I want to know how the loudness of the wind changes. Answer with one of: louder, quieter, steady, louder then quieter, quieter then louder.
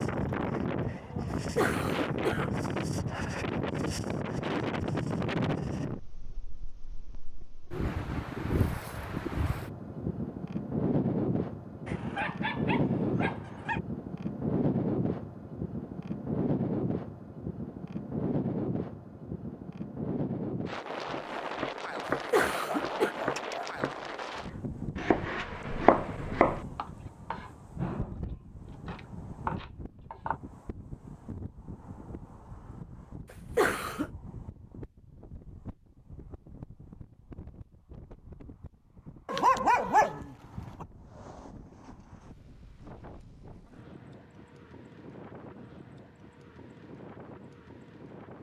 quieter.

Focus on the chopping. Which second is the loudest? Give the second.
26 s.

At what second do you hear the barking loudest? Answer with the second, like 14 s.
40 s.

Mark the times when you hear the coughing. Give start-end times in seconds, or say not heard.
1.6-2.5, 22.3-23.1, 33.5-34.1.